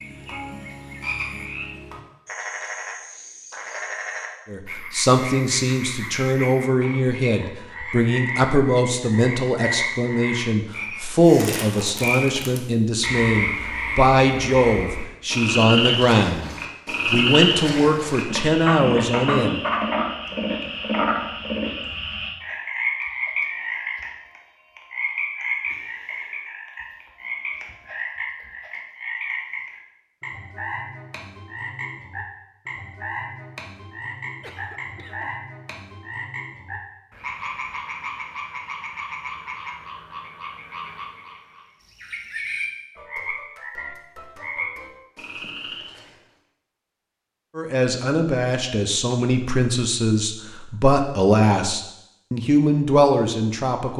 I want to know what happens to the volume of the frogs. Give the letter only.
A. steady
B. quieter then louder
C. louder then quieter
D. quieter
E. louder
C.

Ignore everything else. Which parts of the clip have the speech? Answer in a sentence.
The speech can be heard from 4.5 to 19.6 s and from 47.5 to 53.9 s.